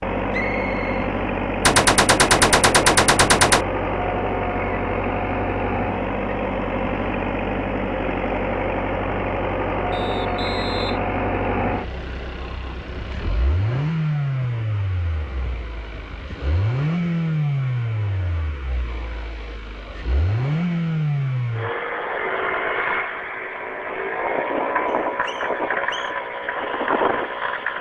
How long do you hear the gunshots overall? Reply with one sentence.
The gunshots can be heard for 2 seconds in total.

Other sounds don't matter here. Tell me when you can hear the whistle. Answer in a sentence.
The whistle can be heard from 0.3 to 1.1 s, from 9.9 to 11.0 s and from 24.9 to 26.1 s.